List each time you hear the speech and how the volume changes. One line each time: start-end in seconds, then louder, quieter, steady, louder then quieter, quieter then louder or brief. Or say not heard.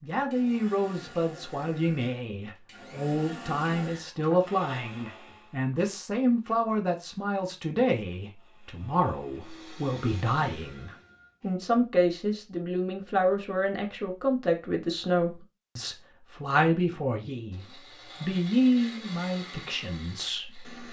0.0-20.7 steady.